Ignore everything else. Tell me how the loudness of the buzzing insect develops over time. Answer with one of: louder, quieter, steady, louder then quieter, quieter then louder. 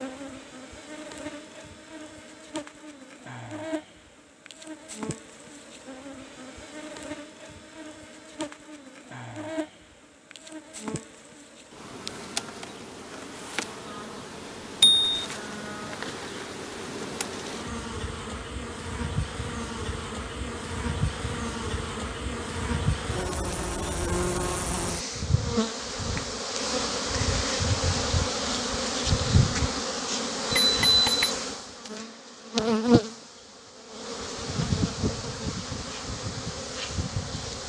louder.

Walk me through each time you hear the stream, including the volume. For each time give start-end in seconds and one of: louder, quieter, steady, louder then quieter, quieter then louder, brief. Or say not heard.
not heard.